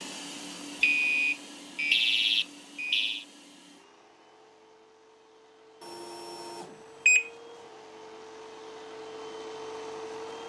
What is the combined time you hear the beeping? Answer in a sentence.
You can hear the beeping for 4 seconds altogether.